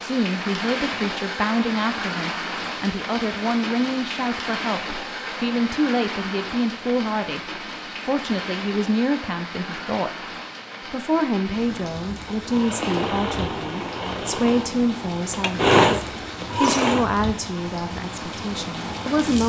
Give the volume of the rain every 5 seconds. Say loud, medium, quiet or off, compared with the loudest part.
loud, loud, medium, loud.